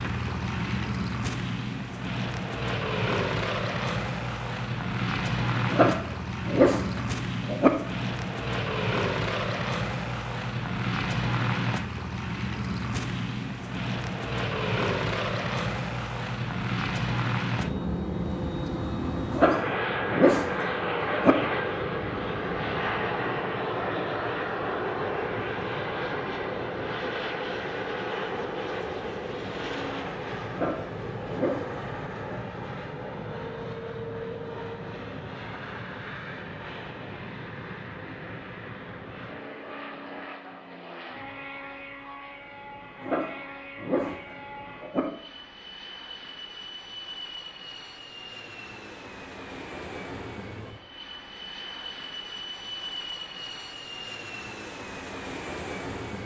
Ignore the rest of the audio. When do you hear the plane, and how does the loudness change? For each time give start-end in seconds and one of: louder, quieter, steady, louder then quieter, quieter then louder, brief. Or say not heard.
0.0-56.2 quieter.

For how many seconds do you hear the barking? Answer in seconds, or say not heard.
8 s.